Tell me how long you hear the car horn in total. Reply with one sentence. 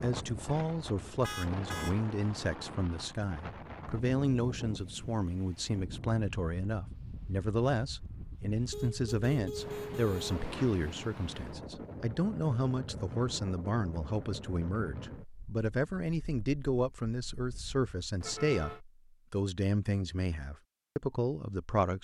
You can hear the car horn for 3 seconds altogether.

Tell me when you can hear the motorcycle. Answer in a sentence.
The motorcycle can't be heard in this clip.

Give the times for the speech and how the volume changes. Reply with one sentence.
You can hear the speech from 0.0 to 21.9 s, at a steady volume.